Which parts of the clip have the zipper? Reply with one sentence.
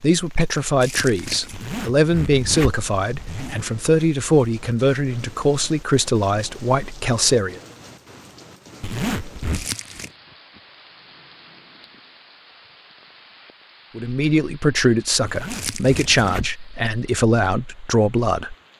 You can hear the zipper from 1.5 to 3.6 s, from 8.8 to 9.7 s and from 15.2 to 16.6 s.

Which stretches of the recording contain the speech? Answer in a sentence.
You can hear the speech from 0.0 to 7.6 s and from 13.9 to 18.6 s.